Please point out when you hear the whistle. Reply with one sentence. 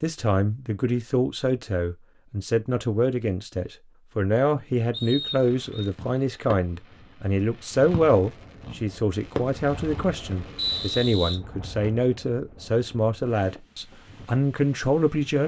The whistle can be heard from 4.9 to 5.9 s and from 10.6 to 12.1 s.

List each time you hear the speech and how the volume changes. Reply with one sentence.
The speech can be heard from 0.0 to 15.4 s, at a steady volume.